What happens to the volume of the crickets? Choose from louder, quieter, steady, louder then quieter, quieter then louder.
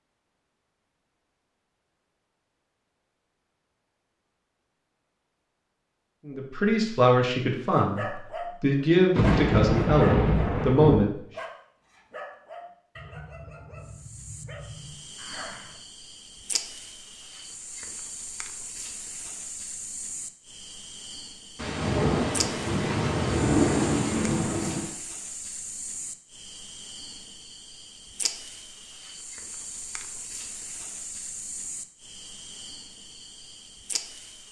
steady.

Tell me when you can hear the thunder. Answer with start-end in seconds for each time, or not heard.
9.1-10.9, 21.6-24.9.